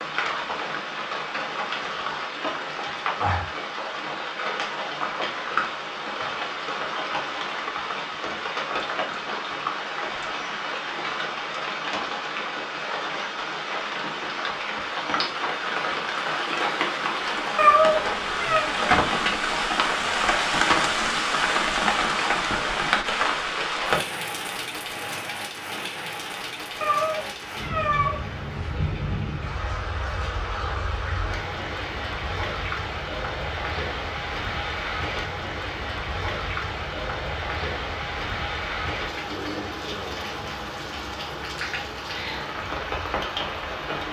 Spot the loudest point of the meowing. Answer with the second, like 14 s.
18 s.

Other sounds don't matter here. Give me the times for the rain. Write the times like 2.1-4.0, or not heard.
0.0-44.0.